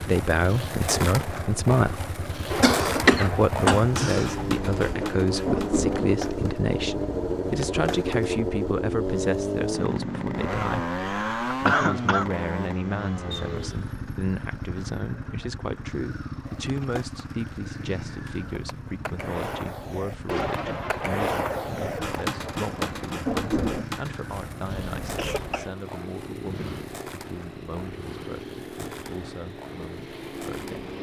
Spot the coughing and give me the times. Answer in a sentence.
You can hear the coughing from 2.6 to 4.5 s, from 11.0 to 12.3 s and from 24.9 to 25.8 s.